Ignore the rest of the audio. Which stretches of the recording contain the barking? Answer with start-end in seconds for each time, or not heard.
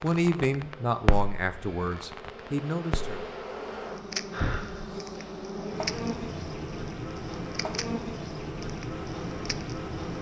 not heard.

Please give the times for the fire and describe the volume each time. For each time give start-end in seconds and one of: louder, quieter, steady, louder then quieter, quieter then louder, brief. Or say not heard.
0.0-10.1 quieter.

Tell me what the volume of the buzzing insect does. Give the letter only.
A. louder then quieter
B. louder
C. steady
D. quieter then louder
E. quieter
B.